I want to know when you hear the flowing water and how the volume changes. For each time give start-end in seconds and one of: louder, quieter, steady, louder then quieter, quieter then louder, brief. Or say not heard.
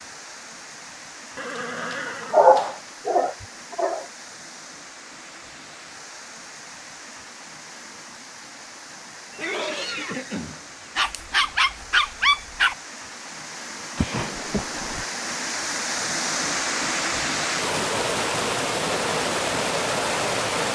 0.0-20.6 louder.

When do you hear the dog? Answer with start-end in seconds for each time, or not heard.
2.3-4.0, 10.9-12.8.